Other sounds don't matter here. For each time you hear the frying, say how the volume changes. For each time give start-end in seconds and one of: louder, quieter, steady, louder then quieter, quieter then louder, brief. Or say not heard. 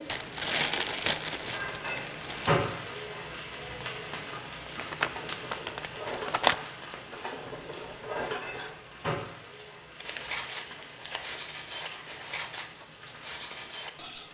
0.0-14.2 quieter.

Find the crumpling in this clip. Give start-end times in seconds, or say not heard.
0.1-2.5, 4.8-6.5, 9.9-12.7.